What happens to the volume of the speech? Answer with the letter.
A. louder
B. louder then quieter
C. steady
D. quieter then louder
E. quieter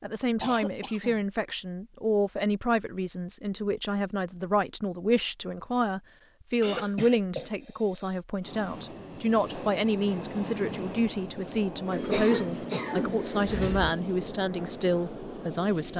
C.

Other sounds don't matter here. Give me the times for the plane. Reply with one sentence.
The plane can be heard from 8.4 to 15.9 s.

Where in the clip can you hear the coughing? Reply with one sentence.
The coughing can be heard from 0.4 to 1.2 s, from 6.6 to 8.2 s and from 11.9 to 13.9 s.